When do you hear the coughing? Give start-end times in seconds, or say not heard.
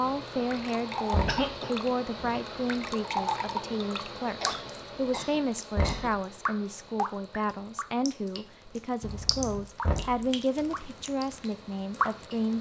1.2-1.8, 4.4-6.2, 9.0-9.7.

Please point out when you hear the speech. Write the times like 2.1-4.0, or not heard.
0.0-12.5.